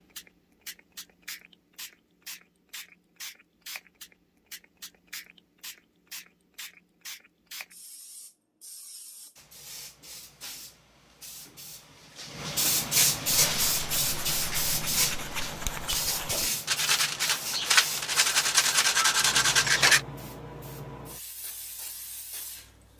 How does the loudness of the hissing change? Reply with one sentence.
The volume of the hissing goes up, then down.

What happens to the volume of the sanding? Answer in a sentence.
The volume of the sanding goes up.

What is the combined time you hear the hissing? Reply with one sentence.
You can hear the hissing for 23 seconds altogether.